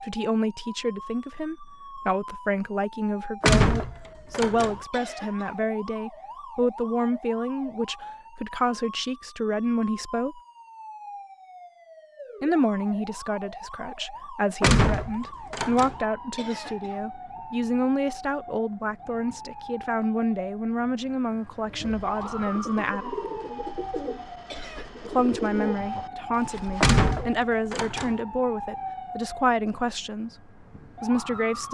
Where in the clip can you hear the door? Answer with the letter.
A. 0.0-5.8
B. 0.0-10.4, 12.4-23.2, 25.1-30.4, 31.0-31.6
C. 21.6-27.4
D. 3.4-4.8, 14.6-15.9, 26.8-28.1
D.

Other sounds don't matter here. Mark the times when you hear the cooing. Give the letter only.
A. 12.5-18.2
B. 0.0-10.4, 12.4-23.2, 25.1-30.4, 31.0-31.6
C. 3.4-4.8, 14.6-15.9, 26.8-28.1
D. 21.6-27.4
D.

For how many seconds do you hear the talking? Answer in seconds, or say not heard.
27 s.